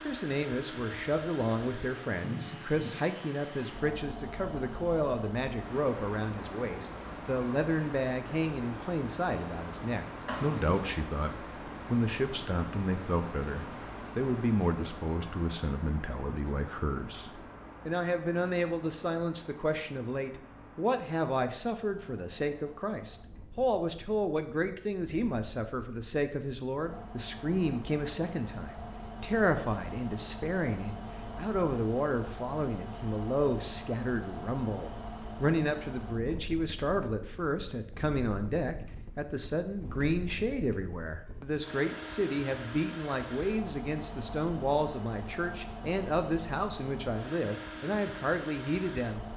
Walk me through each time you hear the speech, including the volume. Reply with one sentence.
You can hear the speech from 0.0 to 49.2 s, at a steady volume.